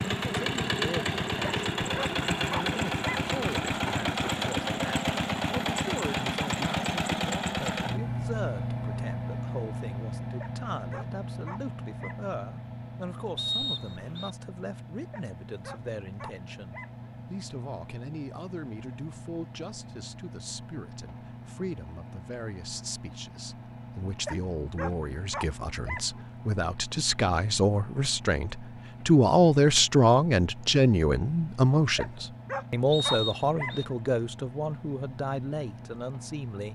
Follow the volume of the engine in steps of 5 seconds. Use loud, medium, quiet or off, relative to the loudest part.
loud, loud, medium, quiet, quiet, quiet, quiet, quiet.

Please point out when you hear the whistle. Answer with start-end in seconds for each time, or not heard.
13.3-14.3, 32.9-33.9.